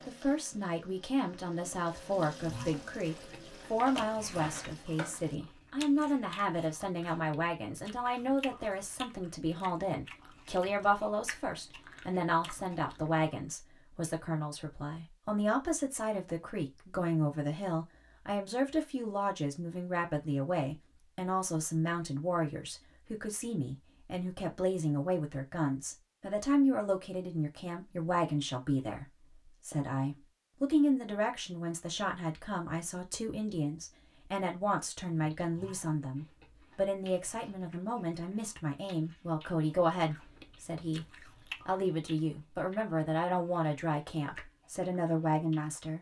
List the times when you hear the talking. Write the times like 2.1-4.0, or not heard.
0.1-45.9.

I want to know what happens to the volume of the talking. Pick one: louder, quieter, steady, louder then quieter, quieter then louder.
steady.